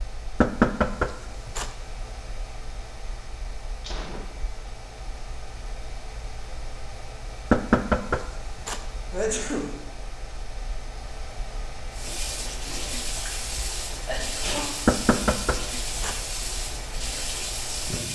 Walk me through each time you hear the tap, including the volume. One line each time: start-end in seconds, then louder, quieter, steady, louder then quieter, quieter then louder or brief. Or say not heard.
11.9-18.1 steady.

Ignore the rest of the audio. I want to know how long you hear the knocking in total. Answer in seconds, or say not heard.
4 s.